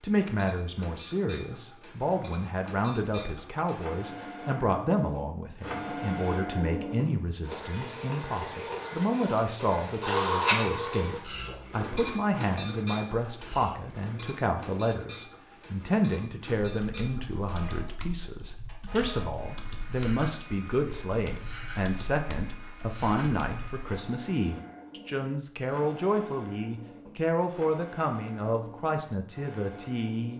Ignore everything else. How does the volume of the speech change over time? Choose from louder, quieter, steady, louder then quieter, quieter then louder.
steady.